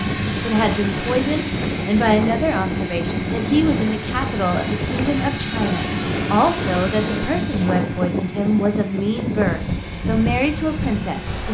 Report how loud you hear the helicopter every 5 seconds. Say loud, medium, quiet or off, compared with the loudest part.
loud, loud, medium.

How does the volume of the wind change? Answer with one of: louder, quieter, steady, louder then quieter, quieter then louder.
steady.